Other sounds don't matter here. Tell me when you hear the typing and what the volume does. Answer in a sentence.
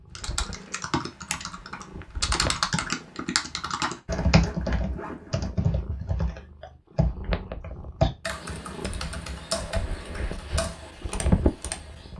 You can hear the typing from 0.1 to 12.1 s, getting quieter.